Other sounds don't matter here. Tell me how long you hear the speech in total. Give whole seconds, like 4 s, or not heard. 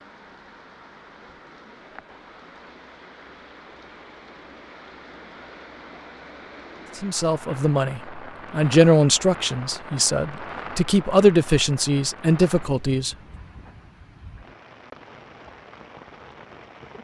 6 s.